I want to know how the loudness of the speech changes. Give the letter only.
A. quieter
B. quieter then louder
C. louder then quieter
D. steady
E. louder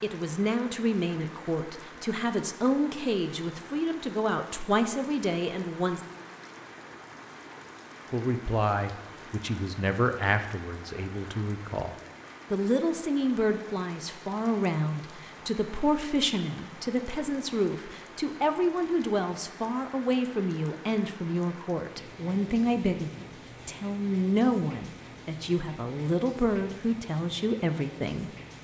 D.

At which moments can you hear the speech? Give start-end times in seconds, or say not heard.
0.0-6.0, 8.1-28.3.